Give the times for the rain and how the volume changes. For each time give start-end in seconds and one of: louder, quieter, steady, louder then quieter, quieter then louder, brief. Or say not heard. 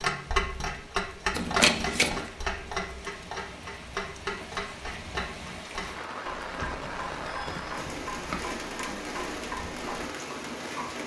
0.0-11.0 louder.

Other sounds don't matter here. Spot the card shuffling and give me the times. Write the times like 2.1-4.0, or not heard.
1.4-2.3, 6.6-8.4.